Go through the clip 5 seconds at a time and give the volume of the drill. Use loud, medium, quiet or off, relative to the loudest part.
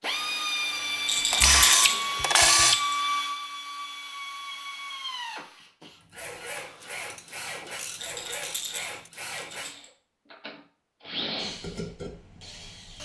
loud, medium, medium.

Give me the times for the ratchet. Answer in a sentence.
The ratchet can be heard from 1.3 to 2.8 s and from 6.5 to 9.1 s.